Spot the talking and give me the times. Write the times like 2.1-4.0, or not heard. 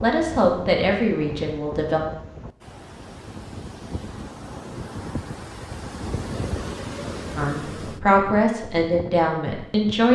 0.0-2.0, 7.3-10.1.